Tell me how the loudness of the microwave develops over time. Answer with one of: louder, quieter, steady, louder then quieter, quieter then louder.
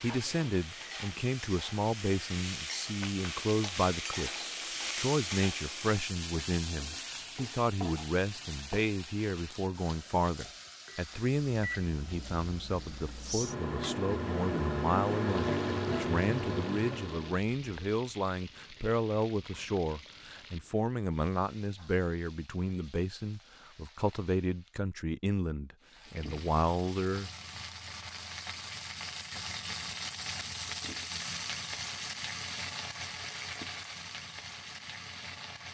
louder then quieter.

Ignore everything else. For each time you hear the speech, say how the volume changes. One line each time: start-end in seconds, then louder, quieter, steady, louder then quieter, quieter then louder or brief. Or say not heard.
0.0-27.3 steady.